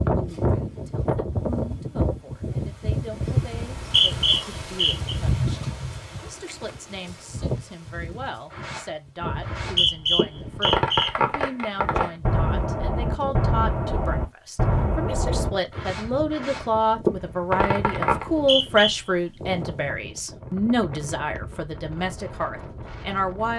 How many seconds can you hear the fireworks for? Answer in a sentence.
You can hear the fireworks for 10 seconds altogether.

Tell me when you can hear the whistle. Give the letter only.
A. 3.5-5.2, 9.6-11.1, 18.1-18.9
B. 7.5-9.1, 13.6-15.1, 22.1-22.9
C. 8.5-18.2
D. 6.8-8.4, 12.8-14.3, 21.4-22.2
A.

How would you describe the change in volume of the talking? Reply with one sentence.
The volume of the talking goes up.